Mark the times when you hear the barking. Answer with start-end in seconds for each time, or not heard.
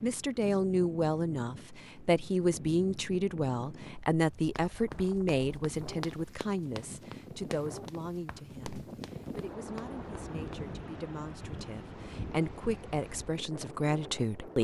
not heard.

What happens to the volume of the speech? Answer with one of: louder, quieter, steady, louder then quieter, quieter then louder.
quieter then louder.